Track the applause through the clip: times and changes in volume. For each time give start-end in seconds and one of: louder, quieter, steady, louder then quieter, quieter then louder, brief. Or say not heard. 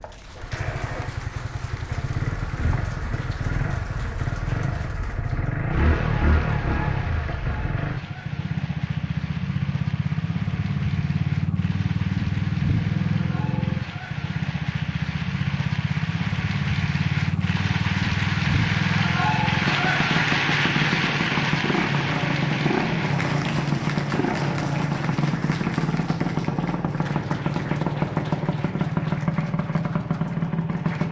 0.0-31.0 louder then quieter.